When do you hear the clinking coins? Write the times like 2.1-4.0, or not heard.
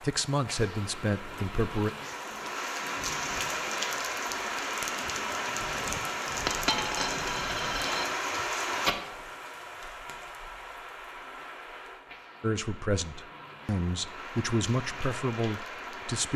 6.5-8.1.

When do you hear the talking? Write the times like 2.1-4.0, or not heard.
0.0-1.9, 12.4-16.3.